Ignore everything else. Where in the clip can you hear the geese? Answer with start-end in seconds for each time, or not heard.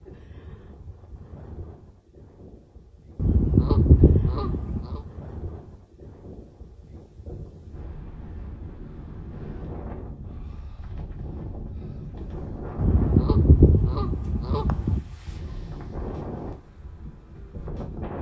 3.1-5.0, 12.8-15.0.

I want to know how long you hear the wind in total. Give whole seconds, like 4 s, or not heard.
18 s.